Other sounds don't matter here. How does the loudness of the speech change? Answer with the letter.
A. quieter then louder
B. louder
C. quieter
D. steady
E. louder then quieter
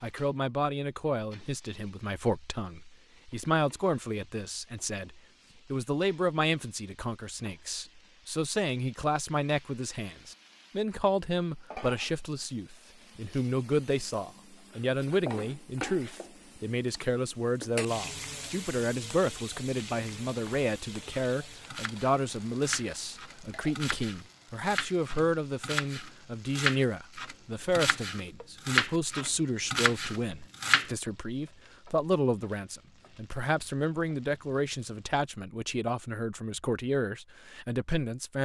D.